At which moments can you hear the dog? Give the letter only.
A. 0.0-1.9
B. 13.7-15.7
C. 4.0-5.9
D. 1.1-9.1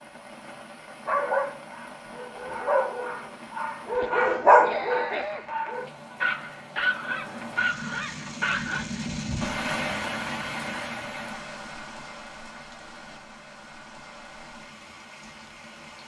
D.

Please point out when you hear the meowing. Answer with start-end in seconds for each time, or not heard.
not heard.